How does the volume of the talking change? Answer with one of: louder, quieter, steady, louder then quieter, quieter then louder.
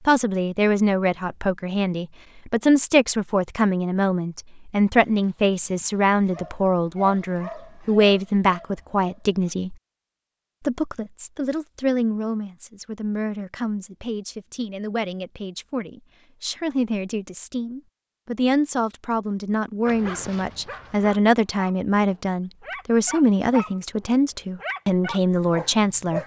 quieter then louder.